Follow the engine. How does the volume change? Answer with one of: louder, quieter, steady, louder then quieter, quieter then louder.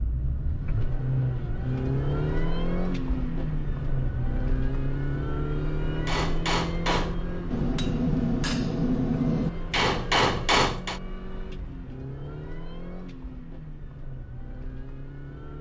quieter.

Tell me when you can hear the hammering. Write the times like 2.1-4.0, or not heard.
6.0-11.0.